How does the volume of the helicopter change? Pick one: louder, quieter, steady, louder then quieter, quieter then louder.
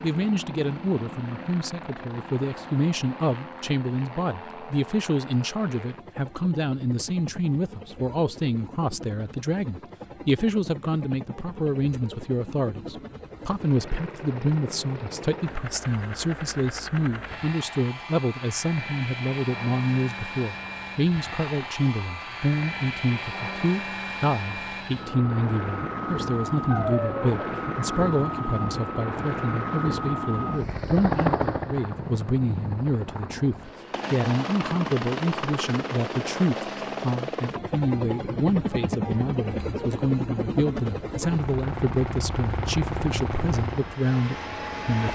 louder.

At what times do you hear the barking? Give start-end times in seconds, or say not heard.
26.7-27.6.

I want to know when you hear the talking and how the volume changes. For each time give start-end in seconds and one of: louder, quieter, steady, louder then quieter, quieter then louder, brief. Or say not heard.
0.0-45.1 steady.